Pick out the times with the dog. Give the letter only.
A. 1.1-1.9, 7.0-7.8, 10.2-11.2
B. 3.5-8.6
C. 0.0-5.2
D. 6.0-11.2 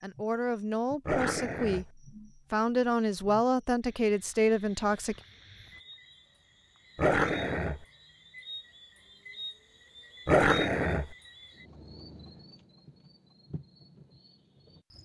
A.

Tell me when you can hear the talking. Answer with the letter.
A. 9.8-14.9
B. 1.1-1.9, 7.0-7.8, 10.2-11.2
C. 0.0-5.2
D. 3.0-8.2
C.